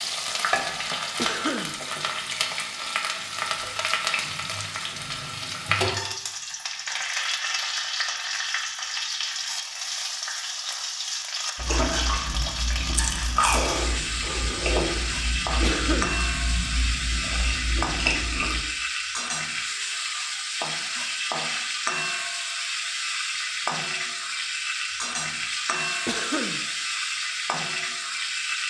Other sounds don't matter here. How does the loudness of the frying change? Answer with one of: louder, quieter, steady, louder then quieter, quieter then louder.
steady.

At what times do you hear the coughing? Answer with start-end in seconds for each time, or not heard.
1.1-1.8, 15.6-16.1, 26.1-26.6.